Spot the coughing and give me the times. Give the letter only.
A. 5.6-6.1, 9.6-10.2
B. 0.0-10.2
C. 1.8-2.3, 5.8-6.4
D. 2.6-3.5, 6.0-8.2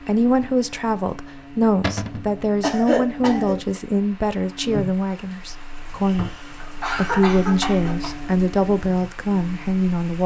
D.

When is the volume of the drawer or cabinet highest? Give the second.
2 s.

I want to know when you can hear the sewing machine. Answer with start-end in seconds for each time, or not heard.
not heard.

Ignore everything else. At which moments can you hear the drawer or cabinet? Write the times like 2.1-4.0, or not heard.
1.8-2.3, 5.8-6.4.